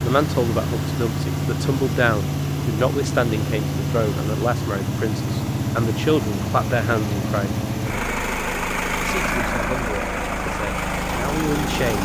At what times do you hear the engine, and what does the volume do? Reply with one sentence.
The engine can be heard from 0.0 to 12.0 s, at a steady volume.